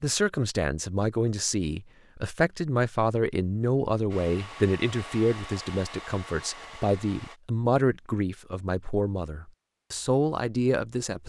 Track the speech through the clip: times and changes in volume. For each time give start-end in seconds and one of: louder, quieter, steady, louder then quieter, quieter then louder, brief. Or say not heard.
0.0-11.2 steady.